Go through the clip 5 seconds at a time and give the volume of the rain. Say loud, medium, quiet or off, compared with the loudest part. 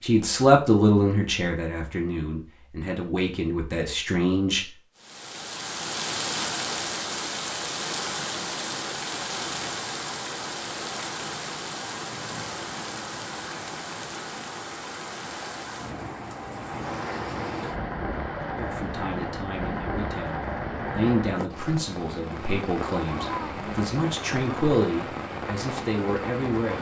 off, loud, loud, loud, loud, loud.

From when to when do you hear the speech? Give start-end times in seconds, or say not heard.
0.0-4.8, 18.6-26.7.